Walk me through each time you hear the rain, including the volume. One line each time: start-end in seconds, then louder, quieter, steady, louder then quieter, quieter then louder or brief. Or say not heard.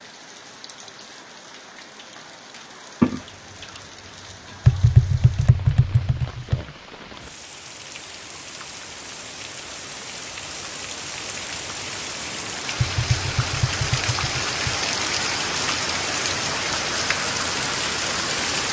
0.0-18.6 louder.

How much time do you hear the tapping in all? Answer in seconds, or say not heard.
4 s.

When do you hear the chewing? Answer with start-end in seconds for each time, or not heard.
3.0-4.8.